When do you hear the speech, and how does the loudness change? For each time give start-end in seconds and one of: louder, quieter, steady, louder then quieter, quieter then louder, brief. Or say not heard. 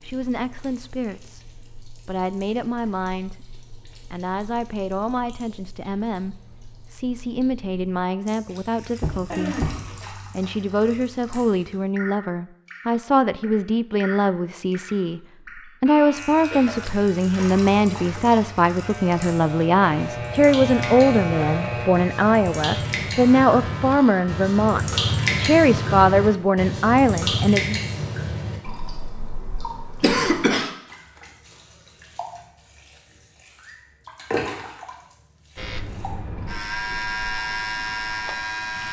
0.0-27.8 louder.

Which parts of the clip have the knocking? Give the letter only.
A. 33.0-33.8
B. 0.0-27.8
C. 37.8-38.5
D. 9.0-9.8
D.